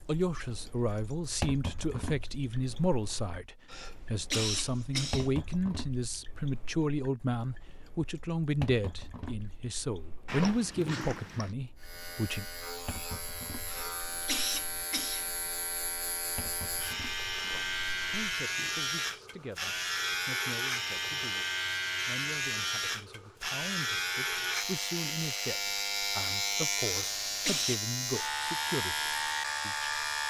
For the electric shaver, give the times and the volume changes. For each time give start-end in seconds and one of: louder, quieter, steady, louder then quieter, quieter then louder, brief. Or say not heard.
11.8-30.2 louder.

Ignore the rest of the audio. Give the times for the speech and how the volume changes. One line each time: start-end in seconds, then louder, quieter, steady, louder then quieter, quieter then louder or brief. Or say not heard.
0.0-12.4 steady
18.1-29.9 louder.